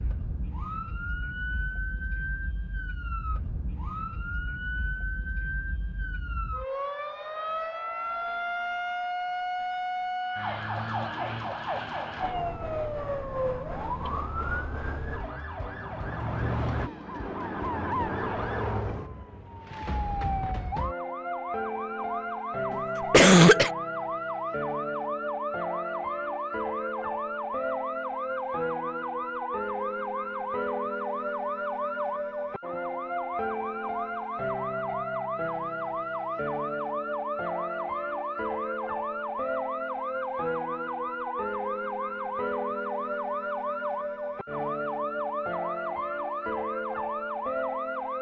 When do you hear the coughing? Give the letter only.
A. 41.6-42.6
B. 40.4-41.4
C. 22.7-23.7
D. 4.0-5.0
C.